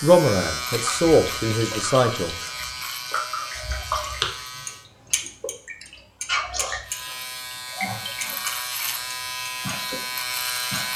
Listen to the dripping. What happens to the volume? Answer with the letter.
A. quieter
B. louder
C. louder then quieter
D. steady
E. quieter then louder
C.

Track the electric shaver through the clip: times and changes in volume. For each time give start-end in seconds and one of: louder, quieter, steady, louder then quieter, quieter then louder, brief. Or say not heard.
0.0-4.9 quieter
6.8-10.9 louder.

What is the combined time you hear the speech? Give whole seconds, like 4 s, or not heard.
2 s.